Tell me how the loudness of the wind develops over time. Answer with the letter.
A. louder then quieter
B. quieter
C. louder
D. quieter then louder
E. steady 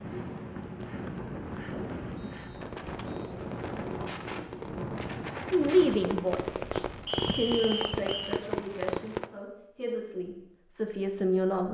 E.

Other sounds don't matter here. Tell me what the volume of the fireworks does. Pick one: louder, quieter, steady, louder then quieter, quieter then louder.
louder.